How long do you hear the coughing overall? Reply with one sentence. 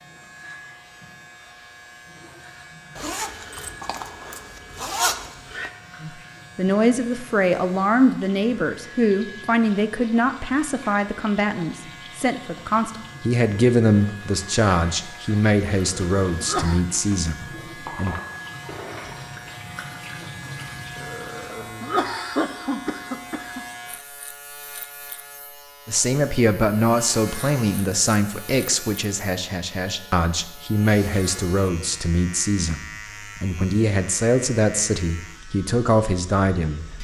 The coughing can be heard for 4 seconds in total.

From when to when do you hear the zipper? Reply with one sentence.
The zipper can be heard from 3.0 to 5.7 s and from 18.6 to 19.4 s.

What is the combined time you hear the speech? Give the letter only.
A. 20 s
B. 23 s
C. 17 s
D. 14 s
B.